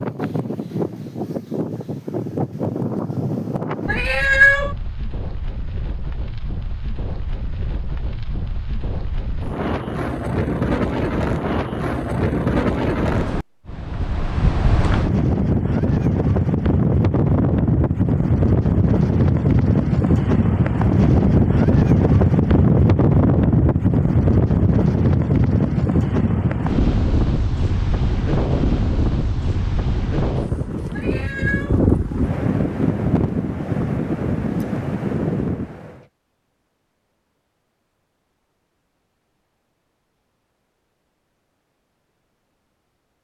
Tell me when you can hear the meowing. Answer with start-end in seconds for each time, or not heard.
3.9-4.8, 30.9-31.8.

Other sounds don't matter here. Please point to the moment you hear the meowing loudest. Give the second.
4 s.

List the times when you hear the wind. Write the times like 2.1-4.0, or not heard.
0.0-36.0.